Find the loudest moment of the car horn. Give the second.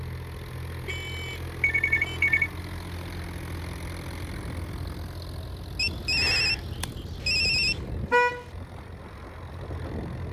8 s.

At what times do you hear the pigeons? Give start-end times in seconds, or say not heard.
not heard.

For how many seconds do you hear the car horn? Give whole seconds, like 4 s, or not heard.
3 s.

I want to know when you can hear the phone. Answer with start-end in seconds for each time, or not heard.
1.6-2.5, 5.8-7.8.